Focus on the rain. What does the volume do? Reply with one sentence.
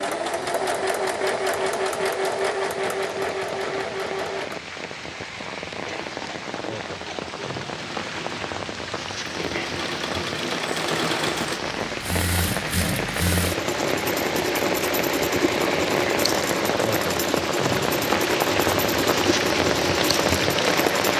The loudness of the rain goes up.